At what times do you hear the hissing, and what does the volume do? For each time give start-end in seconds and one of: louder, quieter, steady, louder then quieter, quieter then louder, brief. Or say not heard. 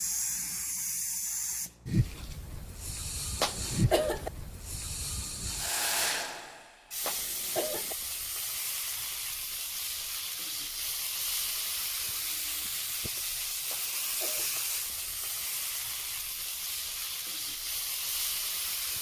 0.0-18.9 steady.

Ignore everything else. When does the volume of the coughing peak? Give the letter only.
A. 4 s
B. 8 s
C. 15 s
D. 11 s
A.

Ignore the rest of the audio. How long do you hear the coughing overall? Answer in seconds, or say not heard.
3 s.